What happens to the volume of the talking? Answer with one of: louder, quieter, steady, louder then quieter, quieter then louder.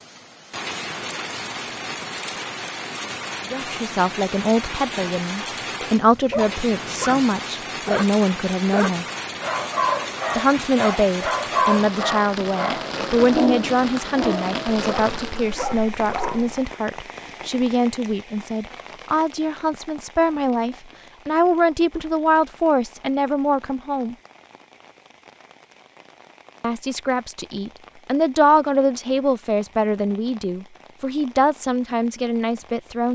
steady.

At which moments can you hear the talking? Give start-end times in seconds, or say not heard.
3.5-9.1, 10.3-24.1, 26.6-33.1.